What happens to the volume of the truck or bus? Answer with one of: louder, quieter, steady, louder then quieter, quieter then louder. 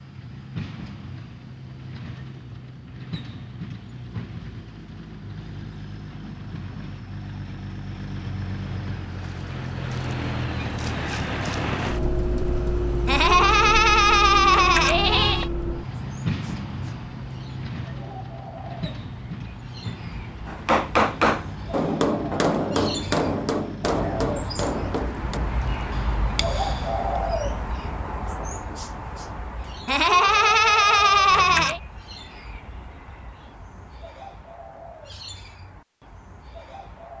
louder then quieter.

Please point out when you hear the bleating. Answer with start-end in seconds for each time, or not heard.
13.1-15.5, 29.9-31.8.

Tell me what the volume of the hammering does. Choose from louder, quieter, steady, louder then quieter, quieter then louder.
quieter.